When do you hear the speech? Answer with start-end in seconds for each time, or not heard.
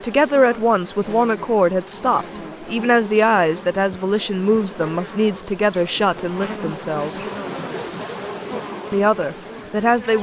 0.0-7.2, 8.9-10.1.